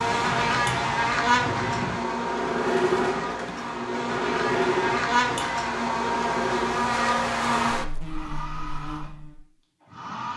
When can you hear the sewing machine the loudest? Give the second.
3 s.